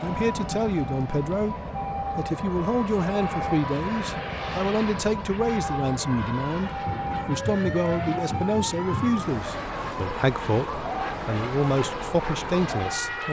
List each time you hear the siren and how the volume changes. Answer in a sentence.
The siren can be heard from 0.0 to 13.2 s, at a steady volume.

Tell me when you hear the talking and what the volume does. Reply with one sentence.
The talking can be heard briefly from 0.0 to 1.6 s; and from 2.1 to 13.2 s, at a steady volume.